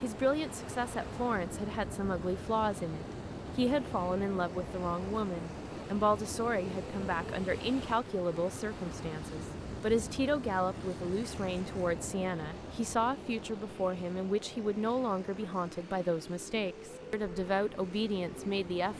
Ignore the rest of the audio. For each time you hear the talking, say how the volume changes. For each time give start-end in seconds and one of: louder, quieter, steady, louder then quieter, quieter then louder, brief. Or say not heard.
0.0-18.9 steady.